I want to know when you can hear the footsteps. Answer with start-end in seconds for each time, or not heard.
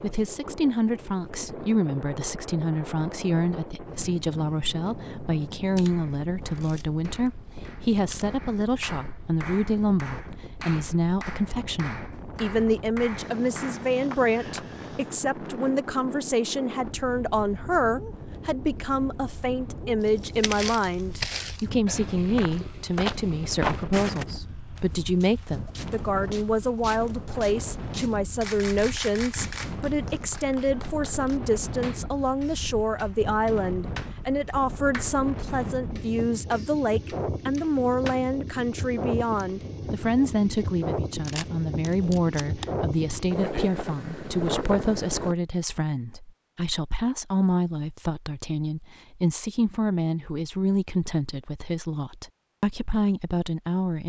20.4-28.2.